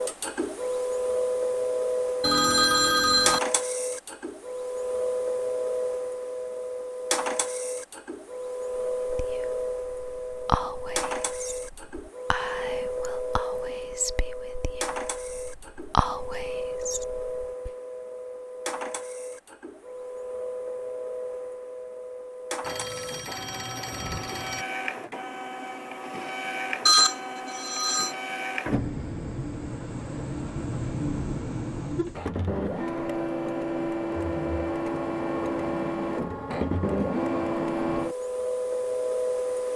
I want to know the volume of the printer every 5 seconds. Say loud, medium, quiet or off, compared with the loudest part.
loud, loud, medium, medium, medium, medium, loud, loud.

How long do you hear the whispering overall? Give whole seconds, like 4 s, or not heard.
9 s.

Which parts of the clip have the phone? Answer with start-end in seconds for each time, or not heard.
2.2-3.4, 22.6-24.6, 26.9-28.1.